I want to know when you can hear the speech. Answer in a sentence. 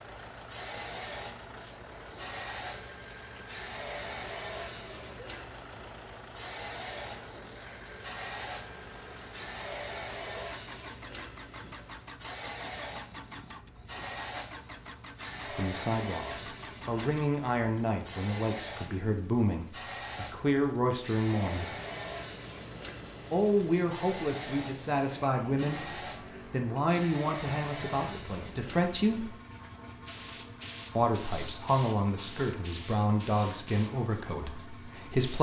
You can hear the speech from 15.4 to 21.6 s, from 23.3 to 29.3 s and from 30.9 to 35.3 s.